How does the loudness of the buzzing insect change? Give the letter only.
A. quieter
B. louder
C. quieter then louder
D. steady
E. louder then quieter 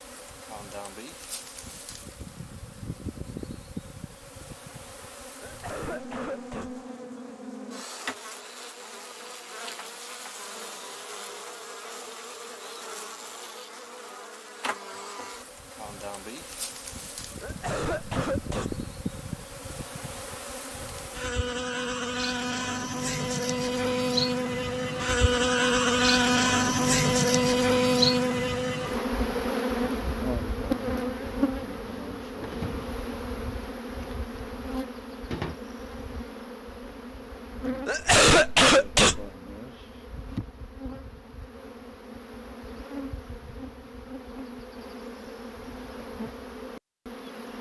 E.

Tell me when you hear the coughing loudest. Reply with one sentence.
The volume of the coughing peaks at 38 seconds.